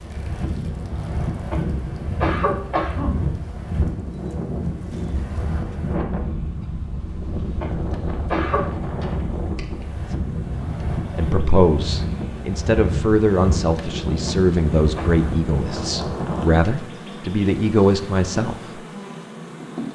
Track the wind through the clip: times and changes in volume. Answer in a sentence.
The wind can be heard from 0.0 to 16.5 s, at a steady volume.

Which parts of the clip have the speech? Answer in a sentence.
You can hear the speech from 10.3 to 18.6 s.